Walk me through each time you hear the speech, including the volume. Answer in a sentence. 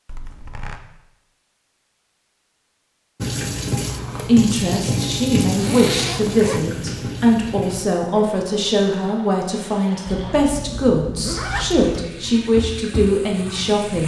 You can hear the speech from 4.1 to 14.0 s, at a steady volume.